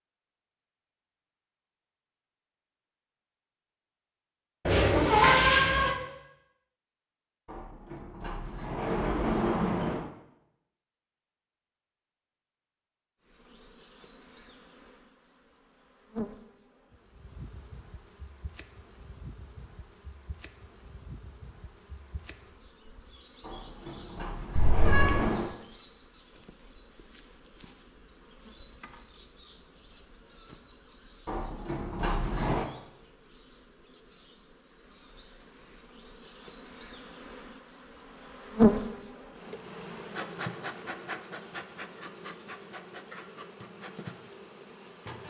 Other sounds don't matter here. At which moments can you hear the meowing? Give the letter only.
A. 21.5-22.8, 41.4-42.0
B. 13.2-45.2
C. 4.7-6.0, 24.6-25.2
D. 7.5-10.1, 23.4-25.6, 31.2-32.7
C.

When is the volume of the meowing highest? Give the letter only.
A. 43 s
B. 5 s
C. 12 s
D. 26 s
B.